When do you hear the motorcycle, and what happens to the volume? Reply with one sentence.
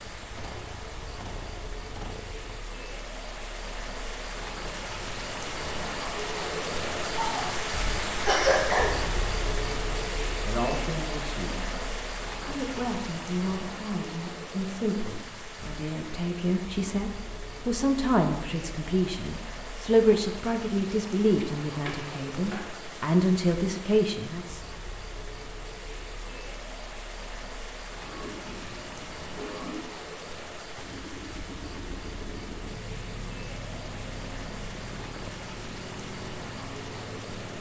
You can hear the motorcycle briefly from 0.0 to 2.6 s; and from 30.8 to 37.5 s, at a steady volume.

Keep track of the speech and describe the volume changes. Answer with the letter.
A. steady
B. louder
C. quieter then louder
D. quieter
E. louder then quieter
B.